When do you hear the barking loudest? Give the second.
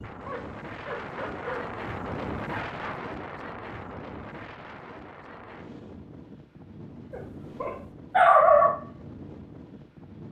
8 s.